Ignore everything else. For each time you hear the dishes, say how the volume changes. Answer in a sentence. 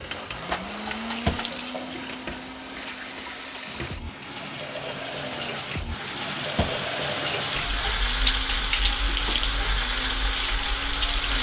You can't hear the dishes here.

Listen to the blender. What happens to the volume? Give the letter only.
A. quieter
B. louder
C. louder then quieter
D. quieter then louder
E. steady
D.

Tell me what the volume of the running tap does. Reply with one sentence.
The volume of the running tap goes up.